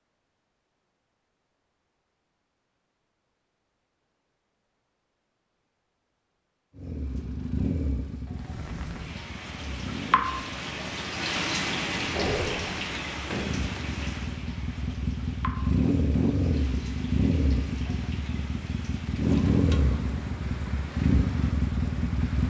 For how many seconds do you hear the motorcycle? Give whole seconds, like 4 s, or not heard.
16 s.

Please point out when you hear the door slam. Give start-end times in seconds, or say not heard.
12.2-13.6.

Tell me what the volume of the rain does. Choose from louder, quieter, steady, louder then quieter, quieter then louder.
quieter.